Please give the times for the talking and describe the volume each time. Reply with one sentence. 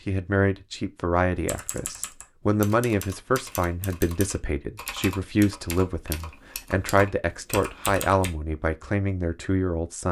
You can hear the talking from 0.1 to 10.0 s, at a steady volume.